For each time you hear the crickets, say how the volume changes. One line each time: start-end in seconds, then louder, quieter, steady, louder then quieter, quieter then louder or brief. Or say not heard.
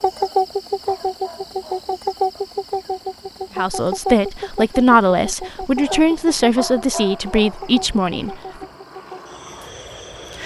0.0-10.4 quieter.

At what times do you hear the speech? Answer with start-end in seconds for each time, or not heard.
3.5-8.7.